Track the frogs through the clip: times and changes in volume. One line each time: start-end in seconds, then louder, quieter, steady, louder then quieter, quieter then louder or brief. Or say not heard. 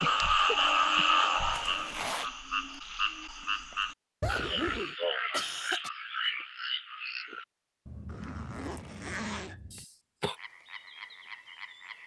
0.0-12.0 quieter.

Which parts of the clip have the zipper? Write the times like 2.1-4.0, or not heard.
1.5-2.3, 4.2-5.0, 8.1-9.6.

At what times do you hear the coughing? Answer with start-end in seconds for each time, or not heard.
0.4-1.2, 4.5-5.9, 9.7-10.3.